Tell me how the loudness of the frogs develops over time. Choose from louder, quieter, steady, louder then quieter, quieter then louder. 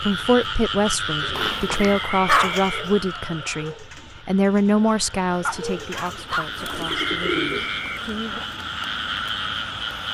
quieter then louder.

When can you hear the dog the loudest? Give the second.
2 s.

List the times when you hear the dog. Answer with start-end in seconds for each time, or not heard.
1.4-2.6, 5.4-7.0.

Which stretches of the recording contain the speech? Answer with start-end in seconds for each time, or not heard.
0.0-8.4.